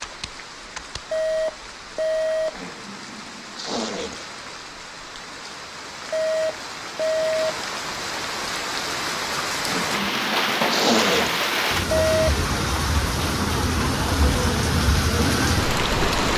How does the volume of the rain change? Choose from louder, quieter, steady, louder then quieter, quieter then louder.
louder.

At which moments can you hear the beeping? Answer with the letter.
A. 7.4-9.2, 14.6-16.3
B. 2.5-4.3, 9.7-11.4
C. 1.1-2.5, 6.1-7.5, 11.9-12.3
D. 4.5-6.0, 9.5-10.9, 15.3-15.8
C.